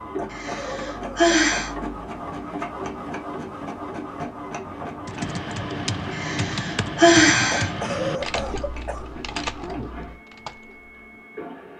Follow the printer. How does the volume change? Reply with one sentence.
The volume of the printer goes down.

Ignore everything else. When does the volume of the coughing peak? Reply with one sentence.
The loudest moment of the coughing is at 8 seconds.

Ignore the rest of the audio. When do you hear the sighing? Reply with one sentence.
The sighing can be heard from 0.3 to 1.7 s and from 6.1 to 7.7 s.